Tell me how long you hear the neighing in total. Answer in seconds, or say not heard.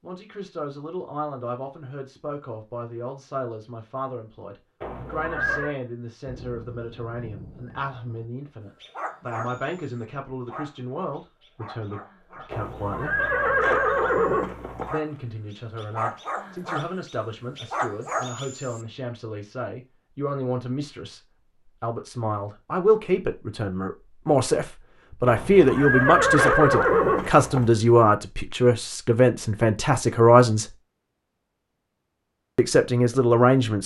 6 s.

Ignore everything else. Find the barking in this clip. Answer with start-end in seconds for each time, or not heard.
8.8-18.9.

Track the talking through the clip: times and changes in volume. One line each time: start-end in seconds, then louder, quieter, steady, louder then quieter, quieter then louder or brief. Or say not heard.
0.0-13.2 steady
14.9-30.7 louder
32.5-33.8 brief.